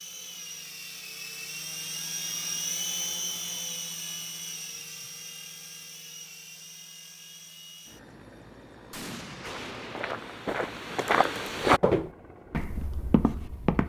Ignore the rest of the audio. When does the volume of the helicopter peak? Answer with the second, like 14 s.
3 s.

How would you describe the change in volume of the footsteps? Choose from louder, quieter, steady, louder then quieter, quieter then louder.
louder then quieter.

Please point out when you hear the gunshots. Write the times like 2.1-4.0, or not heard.
8.9-10.3.